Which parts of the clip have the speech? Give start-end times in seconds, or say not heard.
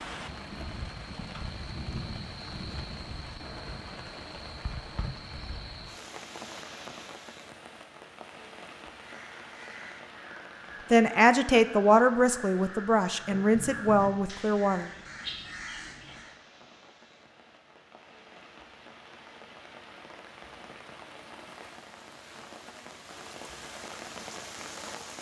10.9-14.9.